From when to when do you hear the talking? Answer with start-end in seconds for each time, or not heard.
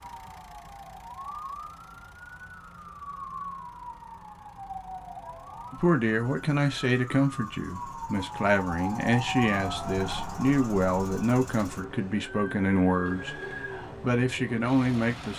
5.7-13.4, 14.0-15.3.